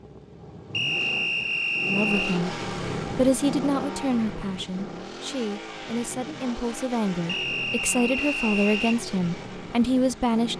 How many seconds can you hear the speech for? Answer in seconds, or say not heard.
9 s.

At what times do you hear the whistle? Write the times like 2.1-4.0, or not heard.
0.7-2.4, 7.2-9.0.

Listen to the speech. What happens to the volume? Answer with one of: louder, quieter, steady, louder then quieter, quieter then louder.
quieter then louder.